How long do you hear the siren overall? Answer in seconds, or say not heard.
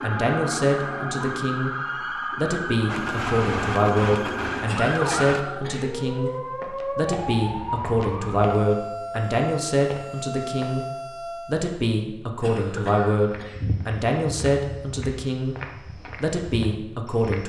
12 s.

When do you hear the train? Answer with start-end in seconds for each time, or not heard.
2.9-5.5.